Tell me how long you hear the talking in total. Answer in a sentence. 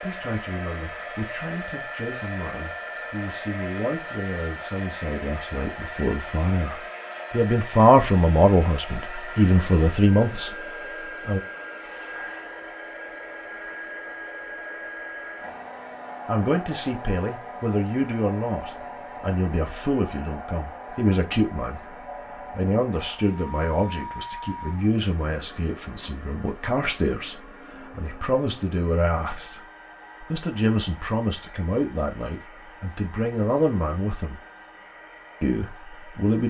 You can hear the talking for 30 seconds altogether.